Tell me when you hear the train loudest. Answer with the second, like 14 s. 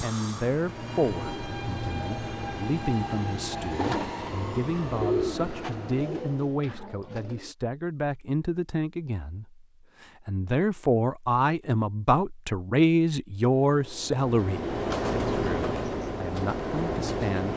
15 s.